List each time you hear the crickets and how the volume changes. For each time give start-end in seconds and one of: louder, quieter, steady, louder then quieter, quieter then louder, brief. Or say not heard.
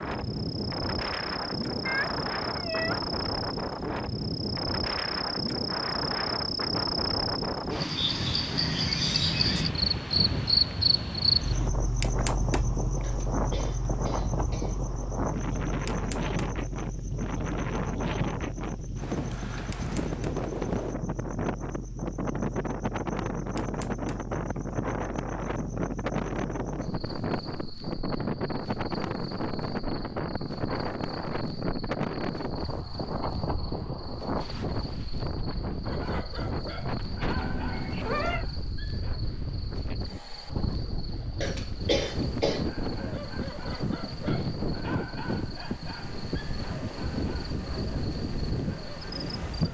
0.1-49.7 quieter.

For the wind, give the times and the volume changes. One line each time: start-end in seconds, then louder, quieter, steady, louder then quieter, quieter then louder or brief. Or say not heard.
0.0-49.7 steady.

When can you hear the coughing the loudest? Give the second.
42 s.